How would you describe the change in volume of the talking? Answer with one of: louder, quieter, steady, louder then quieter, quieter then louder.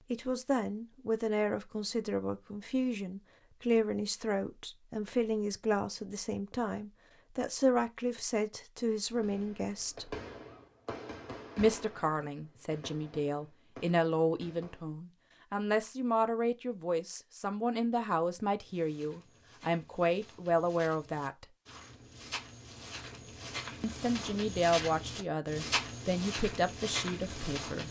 steady.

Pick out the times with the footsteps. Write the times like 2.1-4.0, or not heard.
18.6-27.8.